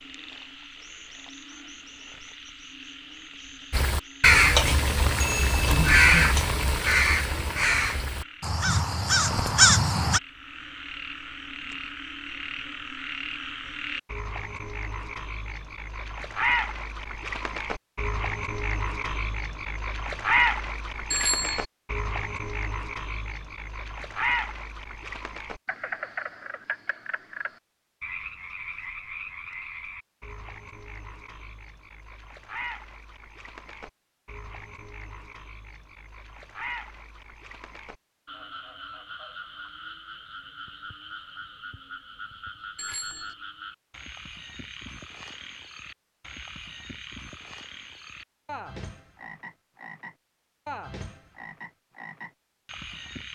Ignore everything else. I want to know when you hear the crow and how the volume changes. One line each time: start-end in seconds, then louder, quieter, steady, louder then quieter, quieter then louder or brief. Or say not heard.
3.7-10.2 quieter then louder.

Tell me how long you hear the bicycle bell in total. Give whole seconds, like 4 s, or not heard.
2 s.